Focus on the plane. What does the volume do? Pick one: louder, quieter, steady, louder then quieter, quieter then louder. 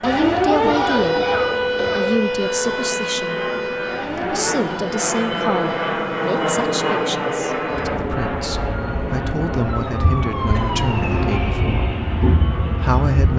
louder then quieter.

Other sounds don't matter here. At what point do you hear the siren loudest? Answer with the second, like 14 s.
1 s.